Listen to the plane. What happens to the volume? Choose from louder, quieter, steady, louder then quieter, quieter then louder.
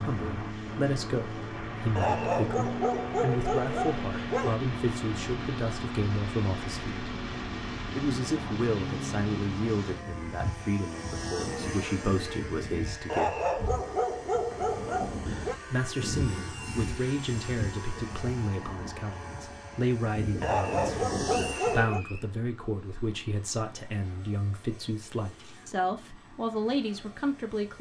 quieter.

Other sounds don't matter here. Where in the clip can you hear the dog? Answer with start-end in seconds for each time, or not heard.
1.9-4.5, 13.1-15.6, 20.4-22.0.